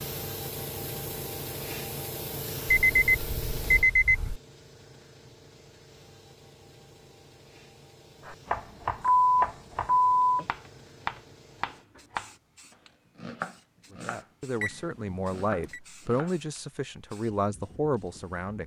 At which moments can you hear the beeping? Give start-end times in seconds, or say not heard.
2.6-4.4, 9.0-10.4, 14.6-15.8.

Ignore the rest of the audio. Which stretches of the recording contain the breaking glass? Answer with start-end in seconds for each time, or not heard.
not heard.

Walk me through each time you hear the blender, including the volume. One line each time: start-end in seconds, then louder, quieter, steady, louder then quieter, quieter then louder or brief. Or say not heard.
not heard.